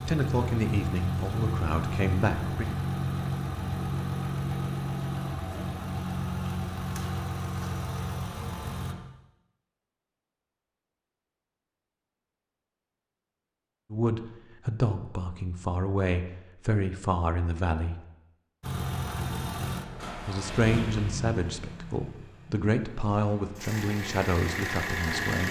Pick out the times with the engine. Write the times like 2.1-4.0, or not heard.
0.0-8.9, 18.6-25.4.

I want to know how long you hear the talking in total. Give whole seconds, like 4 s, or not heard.
12 s.